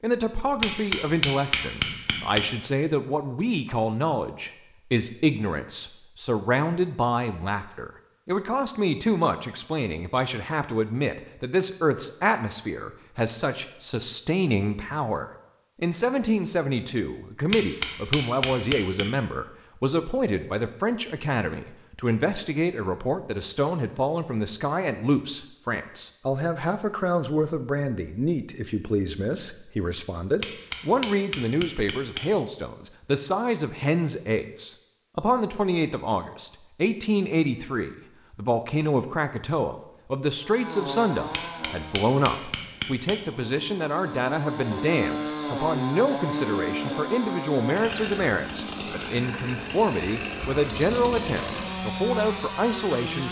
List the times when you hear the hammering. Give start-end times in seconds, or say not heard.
0.6-2.5, 17.5-19.1, 30.4-32.3, 41.3-43.2.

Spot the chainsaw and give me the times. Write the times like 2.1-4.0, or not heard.
40.4-53.2.